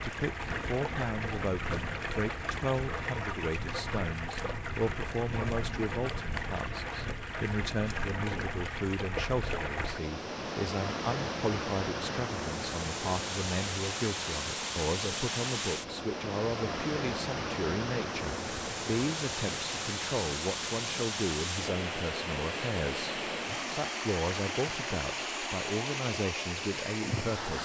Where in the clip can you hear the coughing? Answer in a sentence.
The coughing can't be heard in this clip.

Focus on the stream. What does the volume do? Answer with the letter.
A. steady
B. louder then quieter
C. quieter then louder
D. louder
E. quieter
A.